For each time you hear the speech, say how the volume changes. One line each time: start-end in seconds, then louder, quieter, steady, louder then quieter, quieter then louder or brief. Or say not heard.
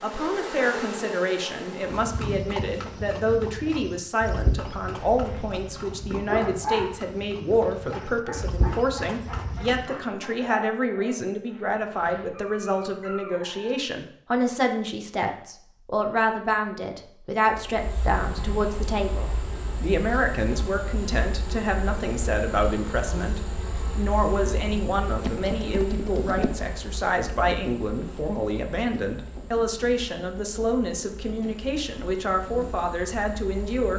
0.0-33.9 steady.